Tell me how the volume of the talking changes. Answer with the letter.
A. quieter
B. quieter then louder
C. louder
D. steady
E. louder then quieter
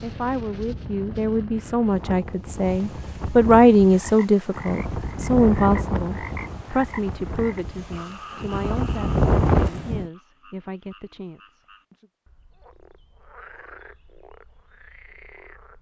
E.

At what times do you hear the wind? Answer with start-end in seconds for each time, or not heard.
0.0-10.1.